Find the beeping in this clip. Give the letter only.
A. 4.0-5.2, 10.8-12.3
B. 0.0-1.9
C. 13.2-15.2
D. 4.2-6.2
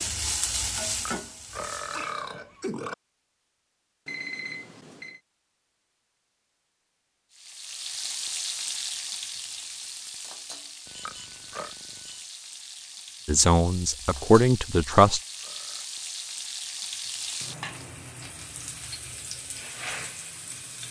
A.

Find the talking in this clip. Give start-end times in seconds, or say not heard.
13.2-15.2.